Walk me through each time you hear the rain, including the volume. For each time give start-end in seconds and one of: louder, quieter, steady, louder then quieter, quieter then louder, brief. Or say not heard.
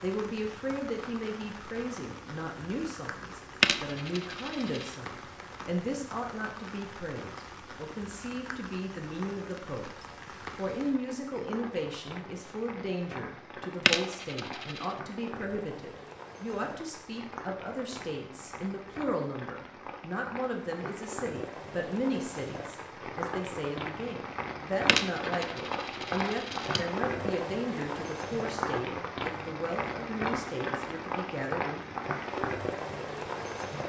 0.0-33.8 louder.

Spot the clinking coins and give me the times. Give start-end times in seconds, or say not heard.
3.6-4.9, 13.8-14.9, 24.9-26.9.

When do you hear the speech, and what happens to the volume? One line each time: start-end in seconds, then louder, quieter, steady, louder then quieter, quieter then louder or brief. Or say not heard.
0.0-9.9 steady
10.6-31.9 steady.